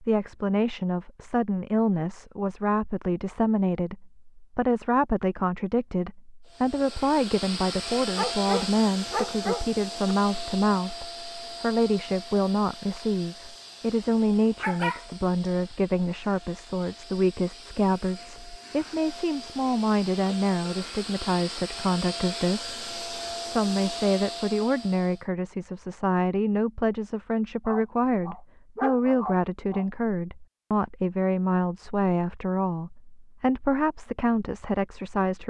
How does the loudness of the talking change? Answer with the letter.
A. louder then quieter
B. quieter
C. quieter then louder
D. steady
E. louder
D.